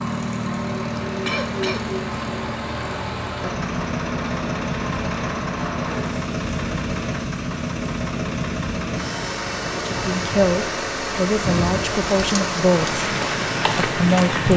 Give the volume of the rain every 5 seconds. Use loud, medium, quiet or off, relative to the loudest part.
medium, medium, loud.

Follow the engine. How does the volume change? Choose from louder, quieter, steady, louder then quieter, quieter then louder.
steady.